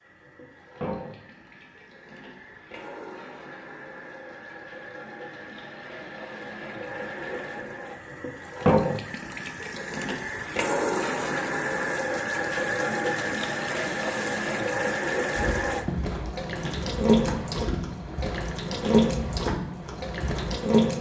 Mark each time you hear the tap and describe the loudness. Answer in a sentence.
The tap can be heard from 0.0 to 20.9 s, getting louder.